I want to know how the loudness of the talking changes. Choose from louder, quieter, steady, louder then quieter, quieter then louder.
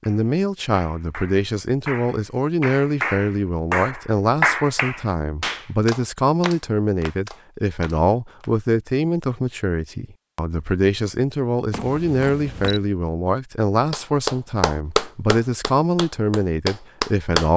steady.